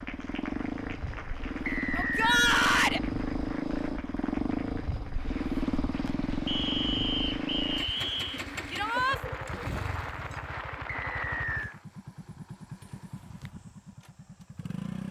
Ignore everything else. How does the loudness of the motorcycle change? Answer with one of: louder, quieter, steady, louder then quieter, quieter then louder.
quieter.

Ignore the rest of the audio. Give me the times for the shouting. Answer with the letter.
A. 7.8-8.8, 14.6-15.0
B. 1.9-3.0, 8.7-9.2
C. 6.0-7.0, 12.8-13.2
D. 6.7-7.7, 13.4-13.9
B.